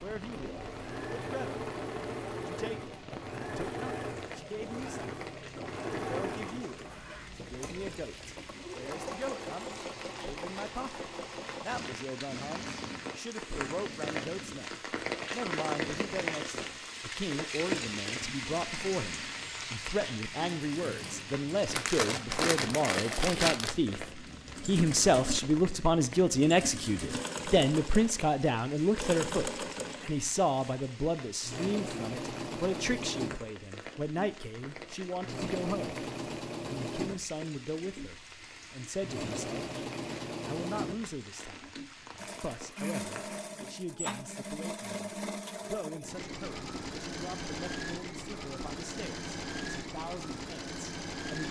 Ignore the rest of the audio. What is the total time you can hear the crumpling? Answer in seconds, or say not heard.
2 s.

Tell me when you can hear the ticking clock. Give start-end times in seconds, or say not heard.
not heard.